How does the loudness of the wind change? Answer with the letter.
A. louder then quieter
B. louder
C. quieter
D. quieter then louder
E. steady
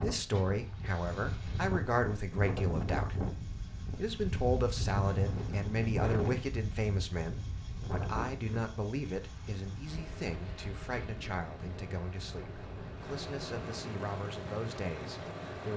C.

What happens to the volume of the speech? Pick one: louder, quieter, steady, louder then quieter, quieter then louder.
quieter.